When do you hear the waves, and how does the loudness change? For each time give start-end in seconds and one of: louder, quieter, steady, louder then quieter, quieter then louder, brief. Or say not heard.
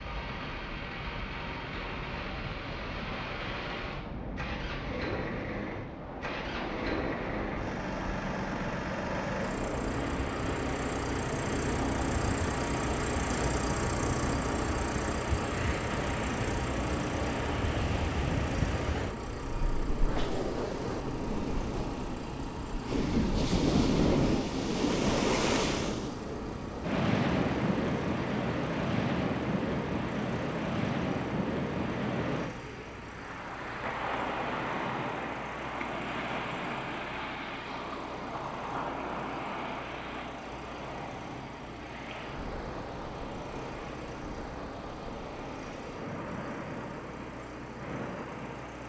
0.0-48.8 louder then quieter.